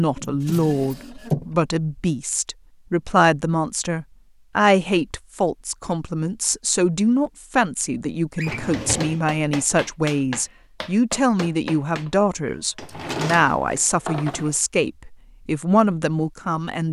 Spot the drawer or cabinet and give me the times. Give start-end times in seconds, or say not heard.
0.1-1.4, 8.3-9.2, 12.8-14.6.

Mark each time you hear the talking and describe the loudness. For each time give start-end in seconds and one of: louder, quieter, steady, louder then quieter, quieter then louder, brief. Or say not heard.
0.0-16.8 steady.